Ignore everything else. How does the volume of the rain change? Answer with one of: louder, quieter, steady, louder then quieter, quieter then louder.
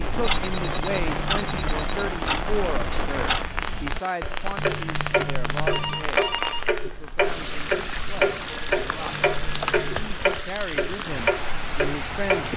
steady.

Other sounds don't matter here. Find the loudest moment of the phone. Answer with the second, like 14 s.
6 s.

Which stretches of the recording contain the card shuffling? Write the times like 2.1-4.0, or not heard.
0.6-1.8, 4.5-6.2, 9.1-10.1.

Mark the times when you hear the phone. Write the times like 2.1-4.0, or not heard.
0.2-2.1, 5.7-6.7, 8.4-10.0.